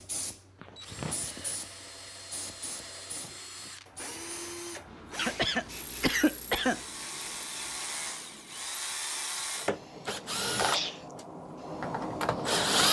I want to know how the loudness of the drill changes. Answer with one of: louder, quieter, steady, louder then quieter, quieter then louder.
louder.